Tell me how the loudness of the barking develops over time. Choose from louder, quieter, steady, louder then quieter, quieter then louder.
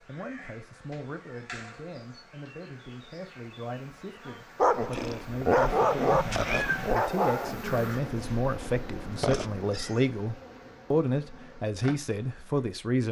quieter.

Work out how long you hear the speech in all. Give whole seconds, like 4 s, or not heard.
13 s.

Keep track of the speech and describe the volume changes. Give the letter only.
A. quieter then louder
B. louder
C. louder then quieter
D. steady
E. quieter
B.